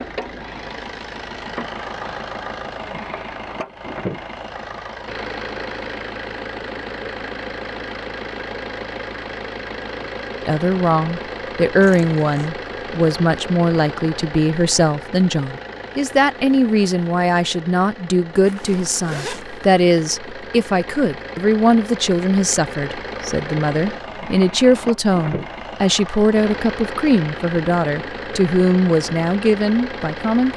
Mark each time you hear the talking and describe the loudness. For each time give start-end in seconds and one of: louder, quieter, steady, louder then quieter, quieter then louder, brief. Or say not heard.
10.4-30.5 steady.